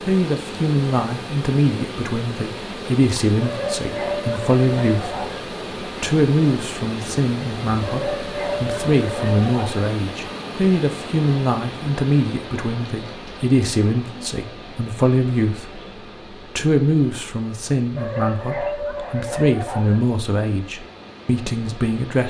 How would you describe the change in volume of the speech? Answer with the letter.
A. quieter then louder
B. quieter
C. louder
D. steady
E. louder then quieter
D.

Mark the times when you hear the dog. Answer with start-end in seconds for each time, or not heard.
3.4-5.4, 7.8-9.8, 17.9-20.0.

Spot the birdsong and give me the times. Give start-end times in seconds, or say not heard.
not heard.